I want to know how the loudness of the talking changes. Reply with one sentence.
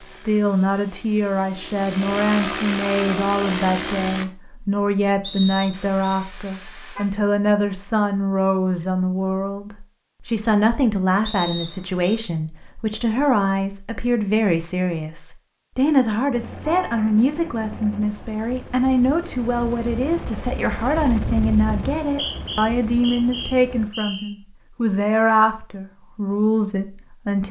The volume of the talking stays about the same.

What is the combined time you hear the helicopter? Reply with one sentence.
The helicopter can be heard for 12 seconds in total.